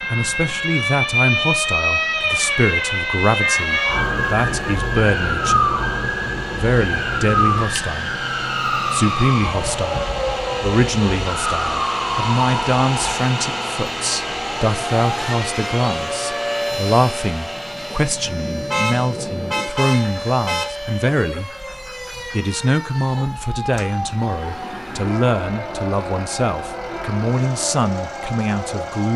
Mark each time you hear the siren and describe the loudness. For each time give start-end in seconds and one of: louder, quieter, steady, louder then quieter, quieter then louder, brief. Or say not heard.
0.0-29.1 quieter.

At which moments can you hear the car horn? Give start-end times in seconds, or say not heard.
3.2-4.8, 18.7-20.6.